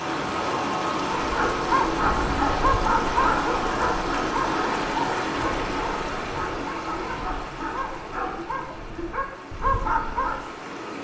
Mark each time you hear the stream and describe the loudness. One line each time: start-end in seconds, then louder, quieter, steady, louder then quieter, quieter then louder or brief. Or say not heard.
0.0-10.9 quieter.